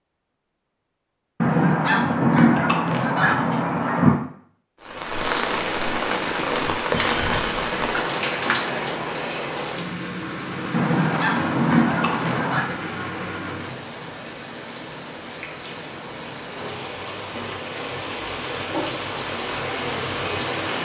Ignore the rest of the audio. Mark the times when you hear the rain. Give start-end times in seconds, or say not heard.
4.8-20.7.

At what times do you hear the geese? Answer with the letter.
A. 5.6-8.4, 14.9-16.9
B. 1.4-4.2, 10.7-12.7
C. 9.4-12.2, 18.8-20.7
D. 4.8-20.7
B.